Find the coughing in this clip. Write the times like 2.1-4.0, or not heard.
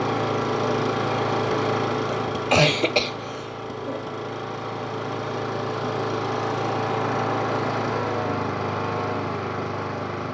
2.1-4.0.